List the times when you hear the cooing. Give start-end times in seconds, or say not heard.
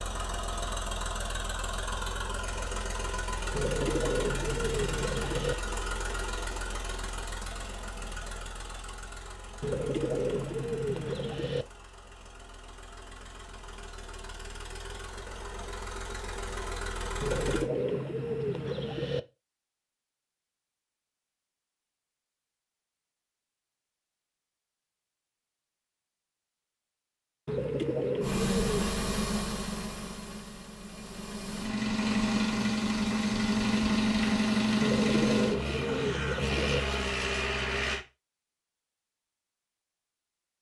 3.5-5.5, 9.6-11.7, 17.2-19.2, 27.4-28.9, 34.8-36.8.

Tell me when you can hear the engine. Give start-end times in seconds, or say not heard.
0.0-17.6, 28.2-38.0.